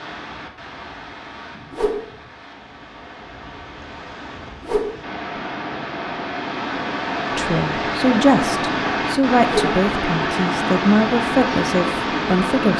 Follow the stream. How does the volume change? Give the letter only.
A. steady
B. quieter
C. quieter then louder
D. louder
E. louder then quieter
D.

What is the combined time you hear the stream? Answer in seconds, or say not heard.
13 s.